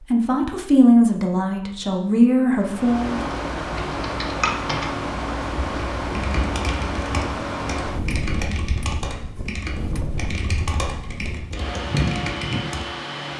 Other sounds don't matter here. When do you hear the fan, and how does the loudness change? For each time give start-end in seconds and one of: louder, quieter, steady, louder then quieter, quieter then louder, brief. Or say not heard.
2.5-13.3 quieter then louder.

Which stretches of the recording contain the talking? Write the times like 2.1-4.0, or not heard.
0.1-3.2.